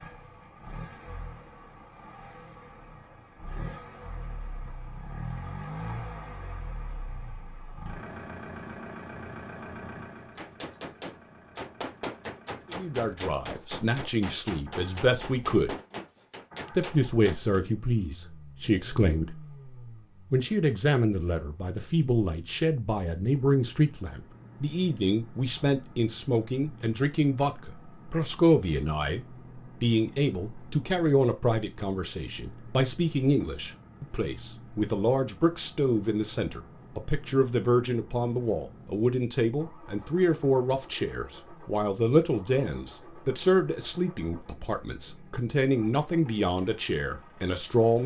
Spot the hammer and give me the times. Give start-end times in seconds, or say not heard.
10.2-17.6.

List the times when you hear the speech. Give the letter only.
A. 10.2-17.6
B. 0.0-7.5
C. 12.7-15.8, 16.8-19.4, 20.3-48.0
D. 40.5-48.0
C.